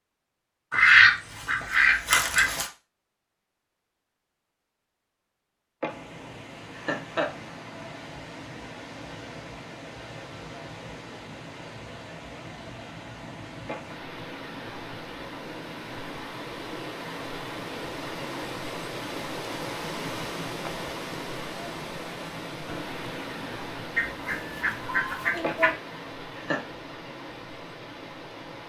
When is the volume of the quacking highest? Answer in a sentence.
The loudest moment of the quacking is at 1 second.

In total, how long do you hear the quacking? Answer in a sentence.
The quacking can be heard for 4 seconds in total.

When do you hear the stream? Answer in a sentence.
You can hear the stream from 5.8 to 28.6 s.